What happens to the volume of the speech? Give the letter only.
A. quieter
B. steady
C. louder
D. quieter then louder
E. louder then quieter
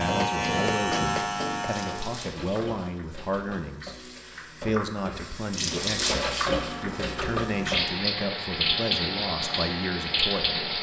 B.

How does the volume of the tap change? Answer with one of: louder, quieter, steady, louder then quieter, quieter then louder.
louder.